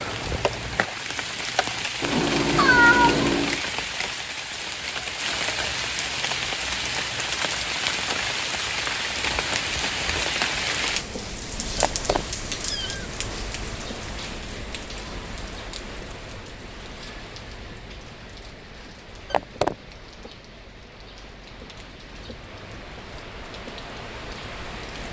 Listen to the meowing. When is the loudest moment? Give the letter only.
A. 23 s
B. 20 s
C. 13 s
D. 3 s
D.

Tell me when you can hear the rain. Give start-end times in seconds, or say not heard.
0.0-25.0.